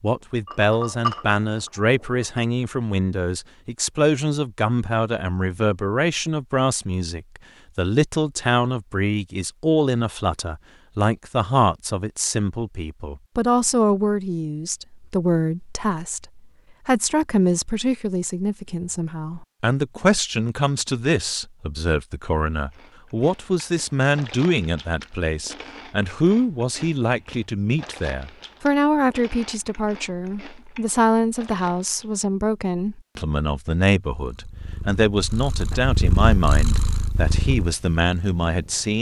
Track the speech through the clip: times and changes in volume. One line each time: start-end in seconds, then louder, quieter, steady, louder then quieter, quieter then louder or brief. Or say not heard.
0.0-38.9 steady.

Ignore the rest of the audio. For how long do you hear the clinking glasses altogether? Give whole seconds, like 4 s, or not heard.
2 s.